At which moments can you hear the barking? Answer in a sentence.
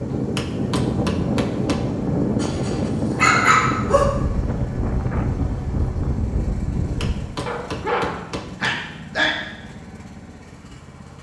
You can hear the barking from 2.4 to 4.0 s and from 7.5 to 9.3 s.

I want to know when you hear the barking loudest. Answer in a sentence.
The loudest moment of the barking is at 3 seconds.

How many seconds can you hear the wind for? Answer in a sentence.
The wind can be heard for 7 seconds in total.